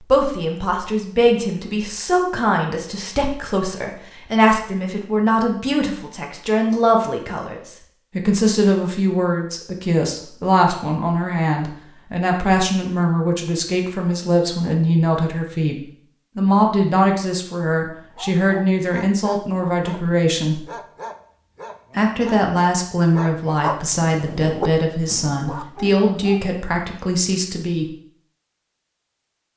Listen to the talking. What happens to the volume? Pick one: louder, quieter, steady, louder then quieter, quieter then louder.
steady.